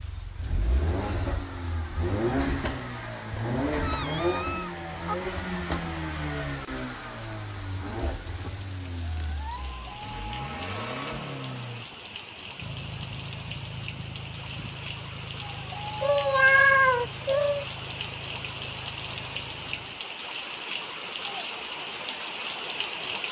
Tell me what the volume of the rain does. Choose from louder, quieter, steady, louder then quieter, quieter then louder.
louder.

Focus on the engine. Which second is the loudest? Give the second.
4 s.